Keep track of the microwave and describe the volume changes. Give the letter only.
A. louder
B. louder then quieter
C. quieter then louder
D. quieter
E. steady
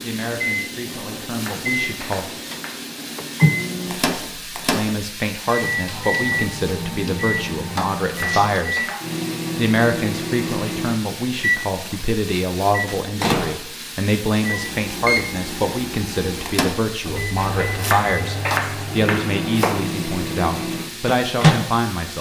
E.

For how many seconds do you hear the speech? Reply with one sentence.
You can hear the speech for 19 seconds altogether.